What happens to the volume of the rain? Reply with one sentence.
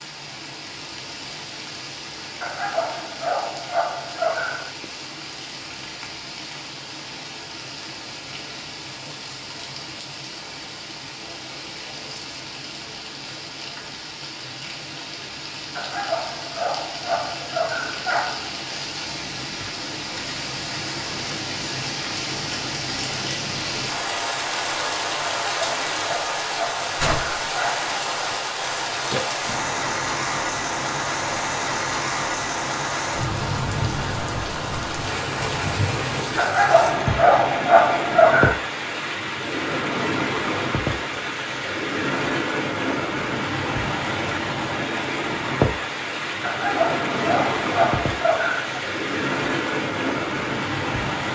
The volume of the rain goes up.